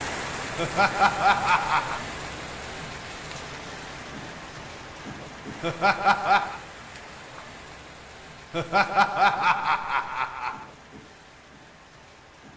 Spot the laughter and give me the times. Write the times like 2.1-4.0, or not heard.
0.6-2.0, 5.6-6.6, 8.5-10.7.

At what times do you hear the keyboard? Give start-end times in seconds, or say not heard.
not heard.